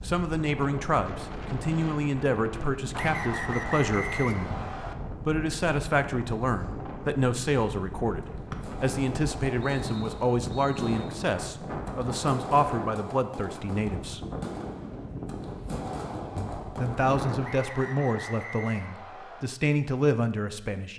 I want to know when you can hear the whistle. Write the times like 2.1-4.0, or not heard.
2.9-5.0, 8.5-11.1, 17.4-19.4.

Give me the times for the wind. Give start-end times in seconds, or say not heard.
0.0-17.5.